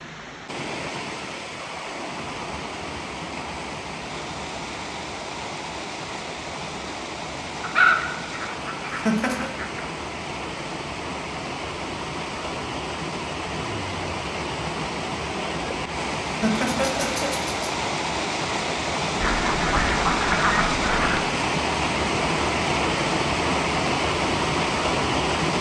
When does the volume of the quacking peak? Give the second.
8 s.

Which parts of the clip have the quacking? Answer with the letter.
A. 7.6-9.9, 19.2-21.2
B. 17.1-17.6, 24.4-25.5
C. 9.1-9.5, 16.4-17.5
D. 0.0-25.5
A.